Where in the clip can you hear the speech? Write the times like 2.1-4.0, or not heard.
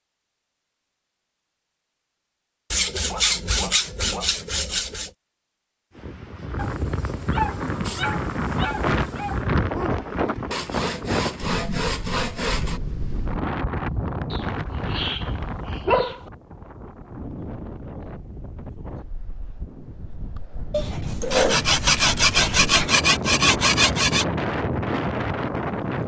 not heard.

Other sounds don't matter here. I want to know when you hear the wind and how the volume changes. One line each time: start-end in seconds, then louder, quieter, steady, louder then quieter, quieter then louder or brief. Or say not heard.
6.0-26.0 quieter then louder.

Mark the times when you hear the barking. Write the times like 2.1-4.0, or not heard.
3.0-4.3, 6.5-9.4, 14.3-16.3, 20.7-22.9.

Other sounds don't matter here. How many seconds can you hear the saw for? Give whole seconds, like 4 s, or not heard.
8 s.